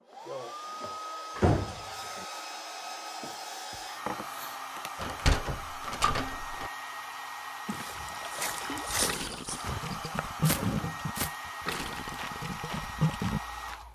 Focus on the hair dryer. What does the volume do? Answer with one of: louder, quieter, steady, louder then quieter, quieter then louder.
steady.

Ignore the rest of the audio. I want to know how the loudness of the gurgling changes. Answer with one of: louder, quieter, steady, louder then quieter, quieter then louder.
louder then quieter.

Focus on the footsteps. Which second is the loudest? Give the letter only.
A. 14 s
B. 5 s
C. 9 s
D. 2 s
C.